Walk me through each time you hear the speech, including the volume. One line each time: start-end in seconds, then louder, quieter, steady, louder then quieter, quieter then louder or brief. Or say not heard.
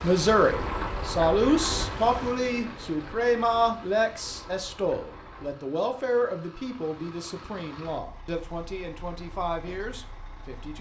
0.0-10.7 quieter.